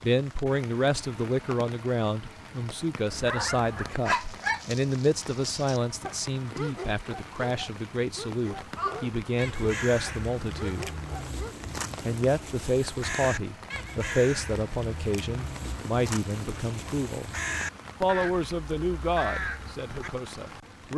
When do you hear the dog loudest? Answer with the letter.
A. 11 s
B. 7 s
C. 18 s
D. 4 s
D.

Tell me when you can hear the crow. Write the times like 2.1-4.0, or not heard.
8.7-20.1.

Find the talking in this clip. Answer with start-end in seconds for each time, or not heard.
0.0-10.9, 12.1-17.3, 18.0-20.9.